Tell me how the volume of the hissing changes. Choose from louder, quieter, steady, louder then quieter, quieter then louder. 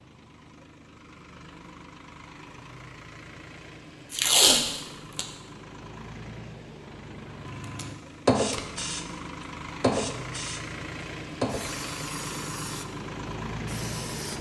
louder then quieter.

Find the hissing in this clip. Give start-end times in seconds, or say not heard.
8.2-14.3.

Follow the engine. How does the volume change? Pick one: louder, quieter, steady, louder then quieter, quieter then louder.
louder.